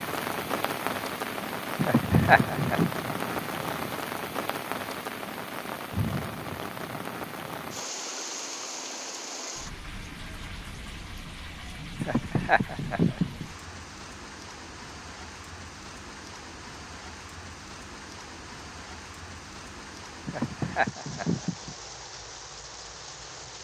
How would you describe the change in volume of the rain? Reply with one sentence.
The volume of the rain goes down.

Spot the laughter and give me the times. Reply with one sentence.
The laughter can be heard from 1.8 to 2.9 s, from 12.0 to 13.4 s and from 20.2 to 21.8 s.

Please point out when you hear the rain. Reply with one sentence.
You can hear the rain from 0.0 to 23.5 s.